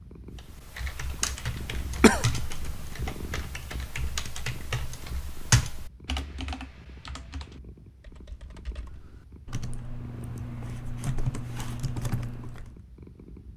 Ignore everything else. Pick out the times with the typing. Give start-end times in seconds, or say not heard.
0.3-12.8.